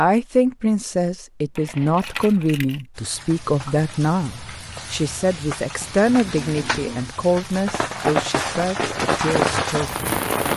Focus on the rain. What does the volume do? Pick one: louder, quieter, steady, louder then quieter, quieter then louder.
louder.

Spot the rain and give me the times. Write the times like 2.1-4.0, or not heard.
3.0-10.5.